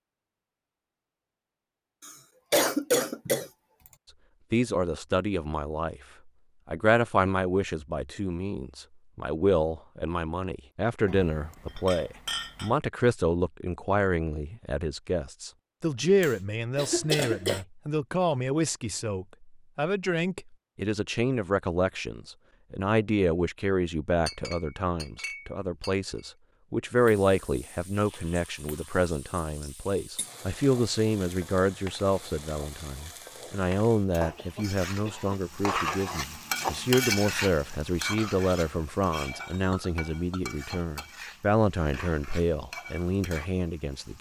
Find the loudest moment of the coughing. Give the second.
3 s.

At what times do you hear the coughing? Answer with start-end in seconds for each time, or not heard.
2.0-3.5, 16.2-17.6, 34.4-35.4.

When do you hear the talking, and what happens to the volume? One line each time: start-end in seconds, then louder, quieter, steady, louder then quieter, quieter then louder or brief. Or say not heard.
4.5-6.0 brief
6.7-44.1 steady.